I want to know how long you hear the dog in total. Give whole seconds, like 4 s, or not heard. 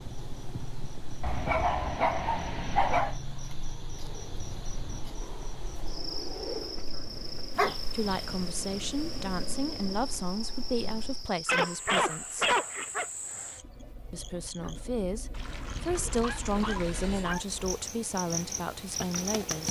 6 s.